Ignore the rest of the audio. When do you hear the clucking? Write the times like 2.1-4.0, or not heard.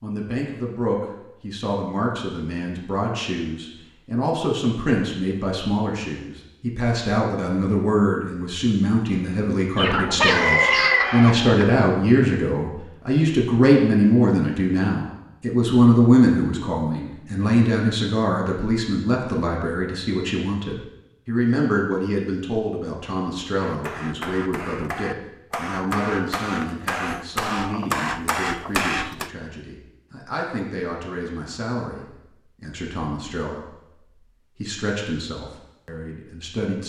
9.8-11.6.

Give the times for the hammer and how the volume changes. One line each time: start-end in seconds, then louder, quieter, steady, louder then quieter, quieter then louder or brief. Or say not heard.
23.4-29.3 louder.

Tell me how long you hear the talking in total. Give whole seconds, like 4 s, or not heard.
37 s.